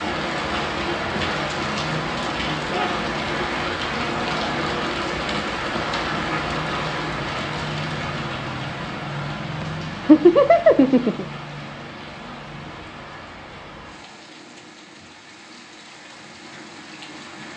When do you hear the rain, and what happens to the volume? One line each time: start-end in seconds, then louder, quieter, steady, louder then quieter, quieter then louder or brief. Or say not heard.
0.0-17.5 quieter.